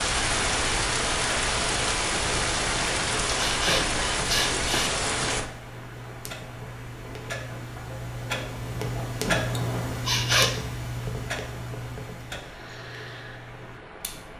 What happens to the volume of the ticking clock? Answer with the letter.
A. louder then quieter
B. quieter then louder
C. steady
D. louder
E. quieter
A.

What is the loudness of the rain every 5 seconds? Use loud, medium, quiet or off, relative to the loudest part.
loud, medium, quiet.